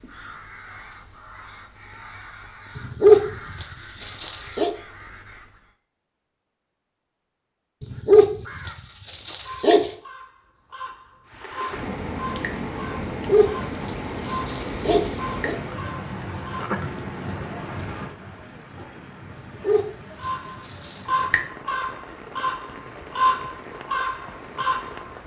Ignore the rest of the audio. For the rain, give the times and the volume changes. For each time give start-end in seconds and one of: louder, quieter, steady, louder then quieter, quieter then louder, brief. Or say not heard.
11.2-25.2 quieter.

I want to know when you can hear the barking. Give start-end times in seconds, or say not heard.
2.8-4.7, 7.8-9.9, 13.1-15.6, 19.4-21.0.